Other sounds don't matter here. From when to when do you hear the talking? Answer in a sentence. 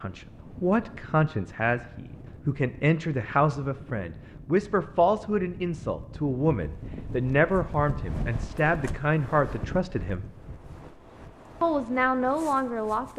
You can hear the talking from 0.0 to 10.2 s and from 11.6 to 13.1 s.